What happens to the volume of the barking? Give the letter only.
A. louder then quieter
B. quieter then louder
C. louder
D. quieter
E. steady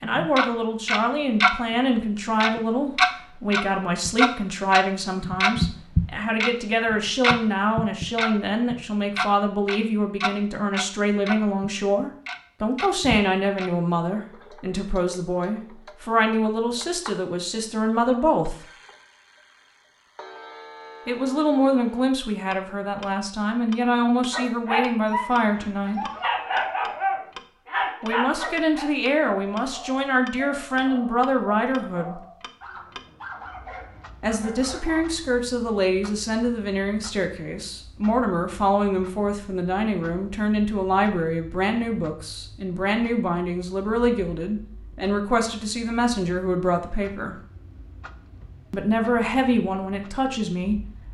D.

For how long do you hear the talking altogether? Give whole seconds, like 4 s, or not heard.
43 s.